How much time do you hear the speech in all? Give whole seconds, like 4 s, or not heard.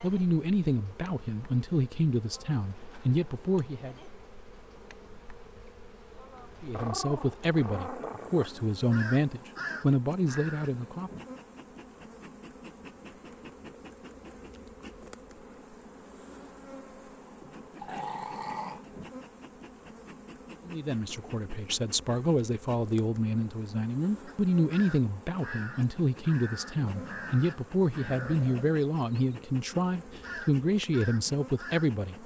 20 s.